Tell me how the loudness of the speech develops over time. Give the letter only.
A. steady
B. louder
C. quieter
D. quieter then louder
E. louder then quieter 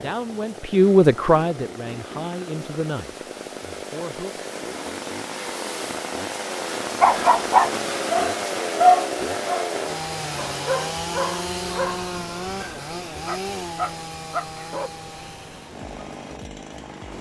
C.